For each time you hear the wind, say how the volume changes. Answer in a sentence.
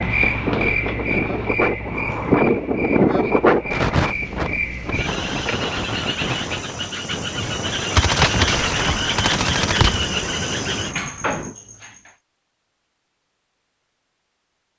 You can hear the wind from 0.0 to 11.6 s, getting quieter.